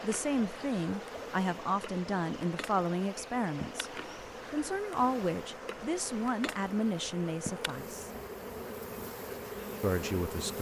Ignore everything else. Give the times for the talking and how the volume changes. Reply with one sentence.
You can hear the talking from 0.0 to 8.1 s, at a steady volume; and briefly from 9.8 to 10.5 s.